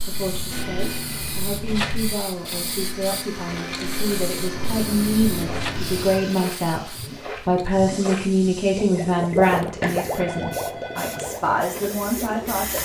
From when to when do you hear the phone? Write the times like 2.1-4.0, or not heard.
0.1-2.1, 4.5-6.3, 9.8-11.3.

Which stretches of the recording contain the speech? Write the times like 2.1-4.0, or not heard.
0.0-12.8.